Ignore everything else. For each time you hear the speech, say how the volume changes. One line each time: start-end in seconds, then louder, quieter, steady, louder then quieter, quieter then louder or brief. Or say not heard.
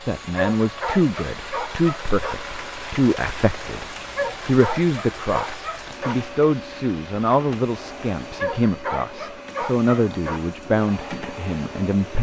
0.1-12.1 steady.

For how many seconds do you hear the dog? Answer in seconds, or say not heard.
6 s.